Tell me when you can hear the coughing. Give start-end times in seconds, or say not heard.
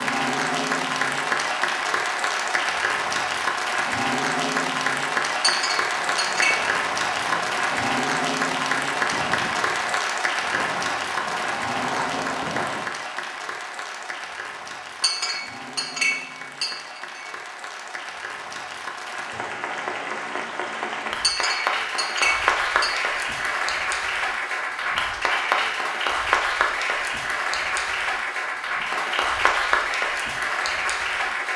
not heard.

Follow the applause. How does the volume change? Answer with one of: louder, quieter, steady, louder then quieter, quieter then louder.
quieter then louder.